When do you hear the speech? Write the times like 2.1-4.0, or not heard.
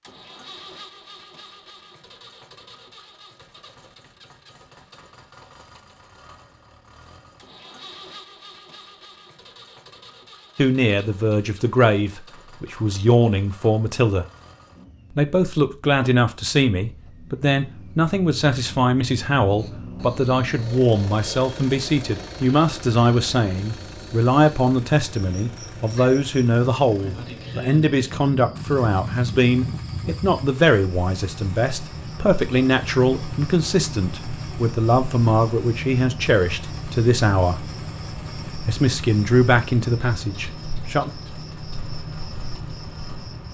10.6-14.2, 15.2-37.6, 38.6-41.1.